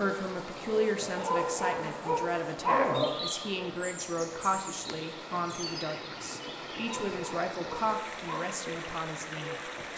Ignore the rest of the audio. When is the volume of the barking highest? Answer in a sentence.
The loudest moment of the barking is at 3 seconds.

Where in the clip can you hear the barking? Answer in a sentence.
You can hear the barking from 1.1 to 3.0 s and from 6.8 to 8.4 s.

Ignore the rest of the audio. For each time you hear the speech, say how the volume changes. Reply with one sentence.
You can hear the speech from 0.0 to 9.9 s, at a steady volume.